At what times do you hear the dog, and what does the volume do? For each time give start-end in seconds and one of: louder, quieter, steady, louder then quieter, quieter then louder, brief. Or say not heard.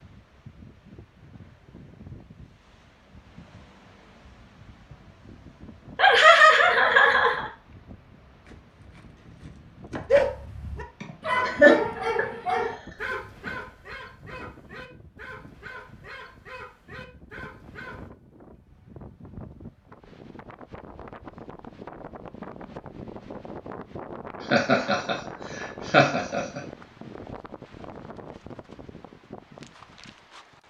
10.1-18.1 quieter.